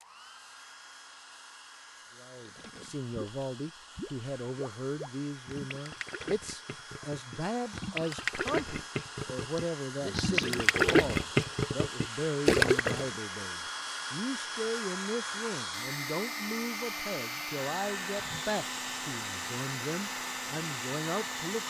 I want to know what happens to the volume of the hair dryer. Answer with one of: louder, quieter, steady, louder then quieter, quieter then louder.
louder.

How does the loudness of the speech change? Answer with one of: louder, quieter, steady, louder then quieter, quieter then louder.
steady.